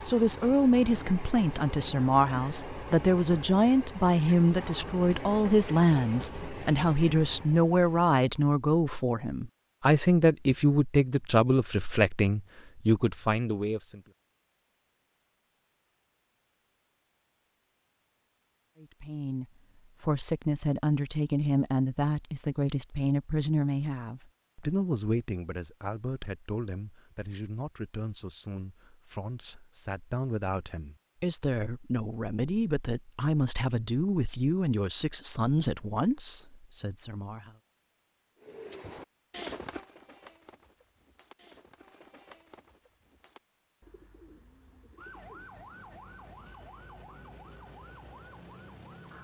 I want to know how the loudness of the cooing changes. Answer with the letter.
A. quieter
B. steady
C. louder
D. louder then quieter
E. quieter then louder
A.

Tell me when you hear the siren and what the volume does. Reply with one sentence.
The siren can be heard from 45.0 to 49.1 s, at a steady volume.